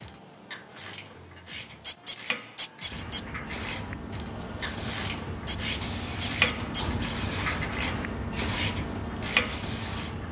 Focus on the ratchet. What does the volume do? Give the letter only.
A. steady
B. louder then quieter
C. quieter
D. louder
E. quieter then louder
D.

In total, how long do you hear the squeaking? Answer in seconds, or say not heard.
3 s.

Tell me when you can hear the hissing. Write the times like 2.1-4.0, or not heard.
2.9-10.2.